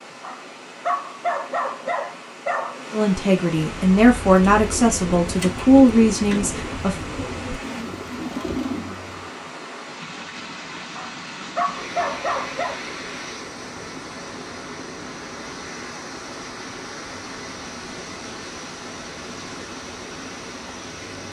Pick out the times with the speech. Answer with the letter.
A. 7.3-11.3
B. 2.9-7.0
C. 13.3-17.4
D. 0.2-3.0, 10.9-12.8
B.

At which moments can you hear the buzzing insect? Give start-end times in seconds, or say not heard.
not heard.